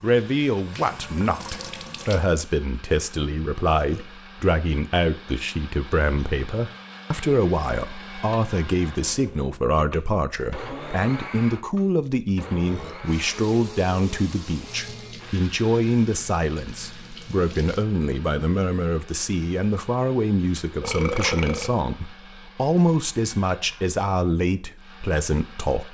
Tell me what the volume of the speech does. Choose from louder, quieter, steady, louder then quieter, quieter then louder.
steady.